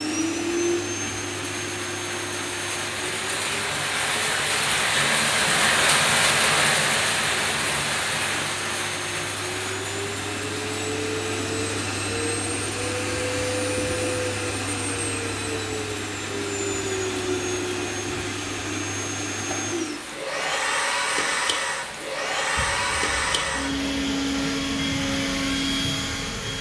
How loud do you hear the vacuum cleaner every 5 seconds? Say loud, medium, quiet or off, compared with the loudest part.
medium, medium, loud, loud, loud, loud.